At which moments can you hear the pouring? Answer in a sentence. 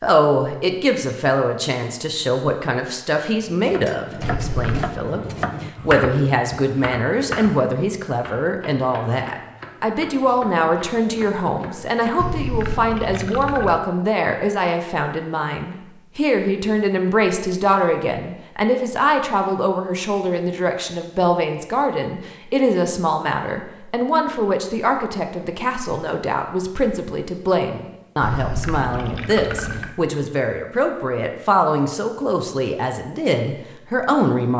You can hear the pouring from 4.2 to 5.0 s, from 12.2 to 13.8 s and from 28.2 to 29.9 s.